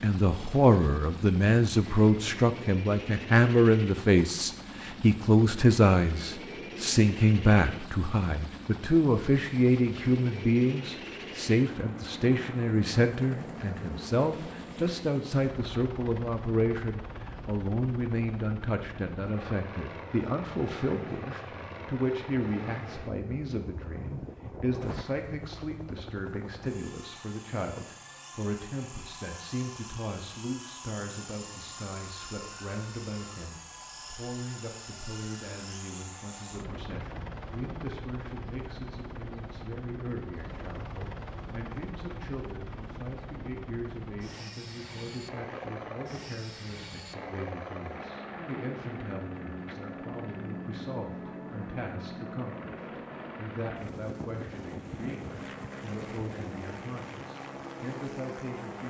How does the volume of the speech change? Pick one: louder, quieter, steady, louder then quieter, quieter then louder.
quieter.